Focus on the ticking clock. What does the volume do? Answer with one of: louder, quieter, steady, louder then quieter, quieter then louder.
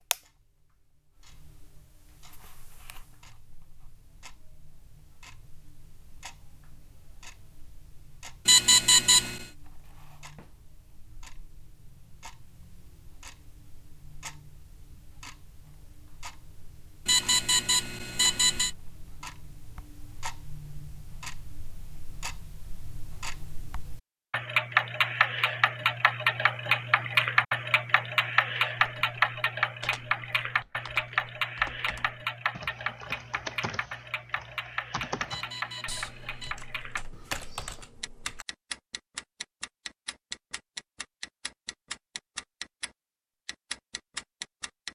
louder then quieter.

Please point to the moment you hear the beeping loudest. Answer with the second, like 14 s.
9 s.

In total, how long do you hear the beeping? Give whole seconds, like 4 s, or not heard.
4 s.